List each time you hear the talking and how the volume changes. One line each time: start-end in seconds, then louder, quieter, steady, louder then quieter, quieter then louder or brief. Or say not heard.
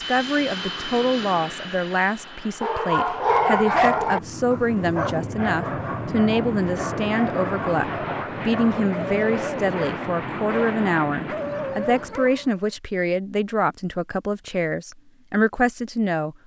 0.0-16.4 steady.